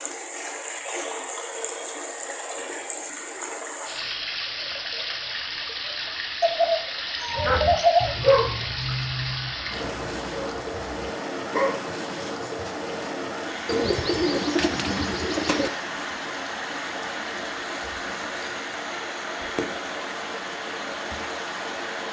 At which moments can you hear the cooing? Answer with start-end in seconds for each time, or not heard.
6.4-8.3, 13.7-15.7.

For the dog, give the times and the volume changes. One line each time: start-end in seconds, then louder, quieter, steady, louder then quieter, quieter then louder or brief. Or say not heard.
7.3-12.7 quieter then louder.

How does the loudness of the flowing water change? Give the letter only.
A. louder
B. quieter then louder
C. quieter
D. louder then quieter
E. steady
E.